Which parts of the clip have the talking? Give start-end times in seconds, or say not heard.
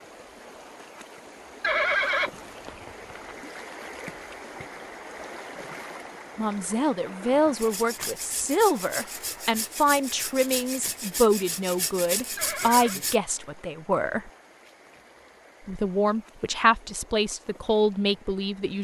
6.3-14.3, 15.7-18.7.